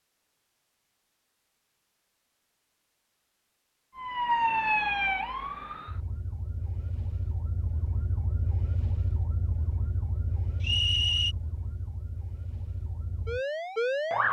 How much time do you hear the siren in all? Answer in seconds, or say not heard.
10 s.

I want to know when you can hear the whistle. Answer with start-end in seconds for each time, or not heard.
10.6-11.3.